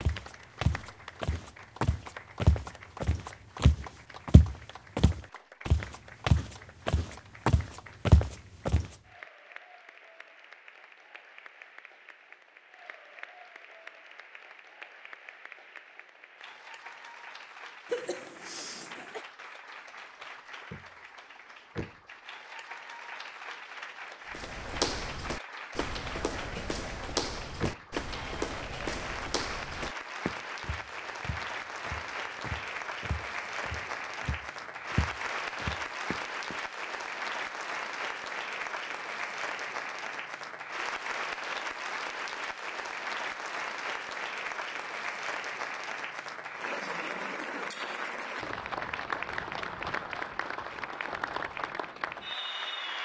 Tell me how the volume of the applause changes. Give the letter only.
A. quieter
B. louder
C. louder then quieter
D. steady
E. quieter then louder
B.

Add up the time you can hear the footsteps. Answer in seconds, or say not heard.
21 s.